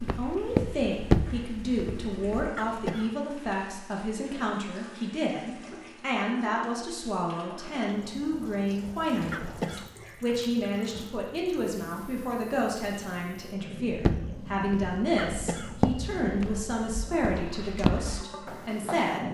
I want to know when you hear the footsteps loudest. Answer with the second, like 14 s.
1 s.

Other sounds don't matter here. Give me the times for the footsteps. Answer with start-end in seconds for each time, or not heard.
0.0-2.5, 13.8-19.2.